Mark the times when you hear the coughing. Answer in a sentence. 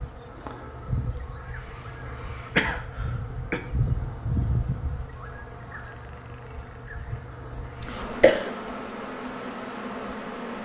The coughing can be heard from 2.5 to 3.6 s and from 7.8 to 8.5 s.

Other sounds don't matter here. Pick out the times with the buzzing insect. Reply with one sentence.
You can hear the buzzing insect from 0.0 to 10.6 s.